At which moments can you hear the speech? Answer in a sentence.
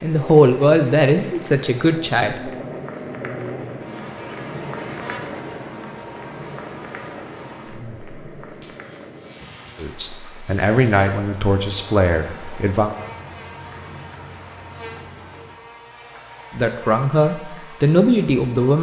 You can hear the speech from 0.0 to 2.5 s, from 9.8 to 12.9 s and from 16.6 to 18.7 s.